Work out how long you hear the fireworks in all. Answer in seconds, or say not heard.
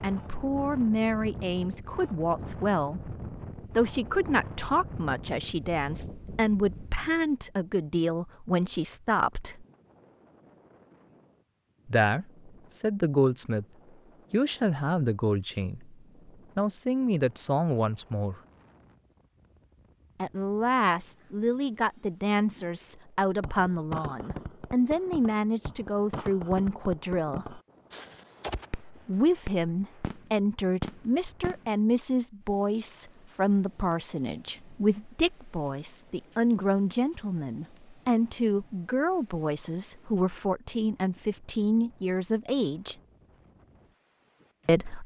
8 s.